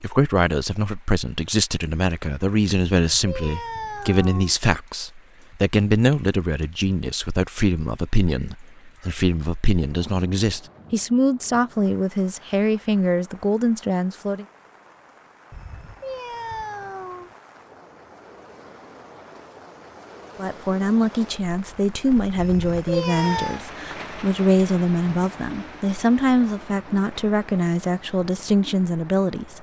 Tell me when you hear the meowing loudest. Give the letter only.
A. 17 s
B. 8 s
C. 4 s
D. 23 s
D.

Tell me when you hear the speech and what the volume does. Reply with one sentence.
The speech can be heard from 0.0 to 14.4 s, at a steady volume; and from 20.4 to 29.5 s, at a steady volume.